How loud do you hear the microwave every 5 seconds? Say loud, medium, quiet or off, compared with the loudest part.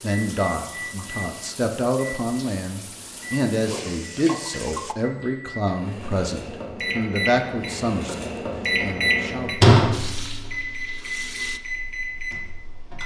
quiet, loud, medium.